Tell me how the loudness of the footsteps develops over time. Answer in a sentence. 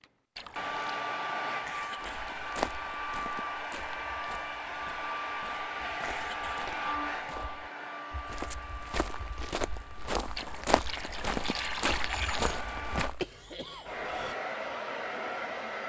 The loudness of the footsteps goes down, then up.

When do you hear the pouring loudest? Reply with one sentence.
The volume of the pouring peaks at 12 seconds.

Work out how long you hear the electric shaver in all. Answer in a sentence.
The electric shaver can't be heard in this clip.